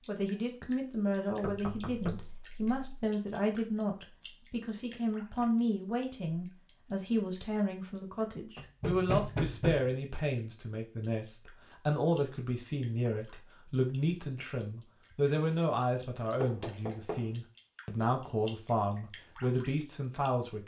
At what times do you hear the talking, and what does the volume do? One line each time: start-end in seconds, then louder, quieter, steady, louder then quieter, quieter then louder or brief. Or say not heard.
0.1-20.6 steady.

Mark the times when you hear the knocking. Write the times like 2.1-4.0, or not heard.
1.4-3.1, 8.6-9.9, 16.4-17.3.